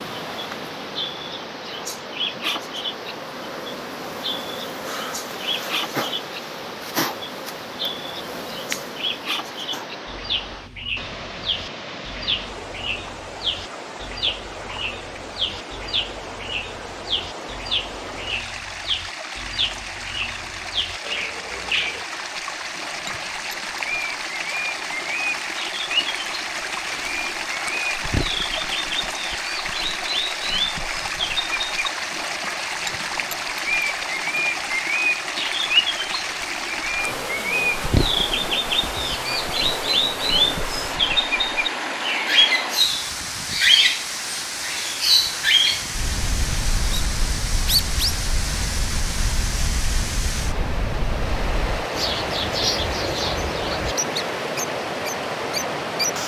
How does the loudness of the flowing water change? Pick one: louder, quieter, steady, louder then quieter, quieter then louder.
louder.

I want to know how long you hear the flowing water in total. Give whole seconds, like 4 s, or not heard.
56 s.